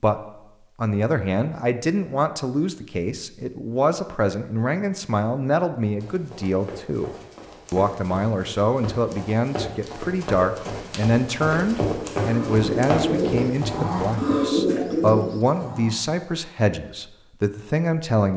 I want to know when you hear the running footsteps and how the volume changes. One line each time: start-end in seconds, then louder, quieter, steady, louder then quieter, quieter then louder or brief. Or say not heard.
6.0-14.2 louder.